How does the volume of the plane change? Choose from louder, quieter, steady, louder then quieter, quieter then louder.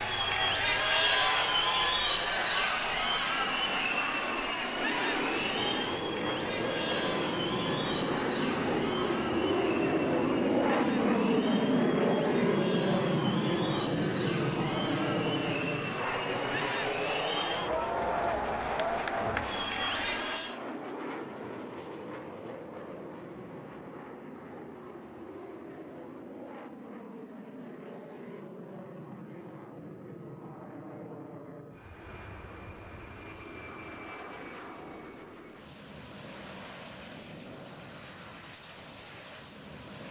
louder then quieter.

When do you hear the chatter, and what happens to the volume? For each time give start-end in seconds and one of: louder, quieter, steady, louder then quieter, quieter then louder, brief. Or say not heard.
0.0-20.6 quieter then louder.